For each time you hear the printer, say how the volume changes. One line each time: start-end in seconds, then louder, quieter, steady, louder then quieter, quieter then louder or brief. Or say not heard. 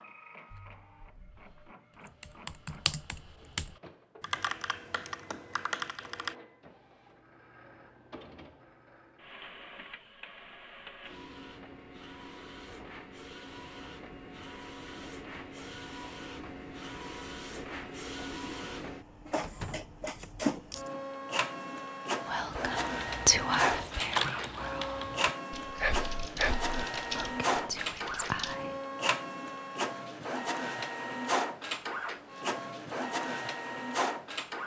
0.0-34.6 louder.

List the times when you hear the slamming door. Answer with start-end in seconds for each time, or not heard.
19.4-19.9.